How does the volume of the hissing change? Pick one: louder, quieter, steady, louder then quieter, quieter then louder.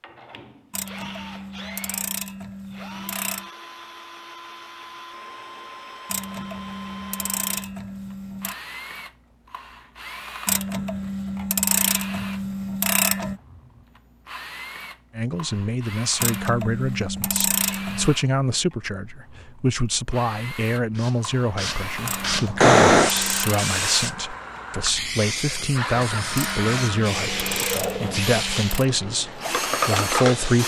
quieter.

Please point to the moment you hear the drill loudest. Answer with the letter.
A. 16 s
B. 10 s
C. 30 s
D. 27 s
C.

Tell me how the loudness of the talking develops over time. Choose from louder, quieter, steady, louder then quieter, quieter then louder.
steady.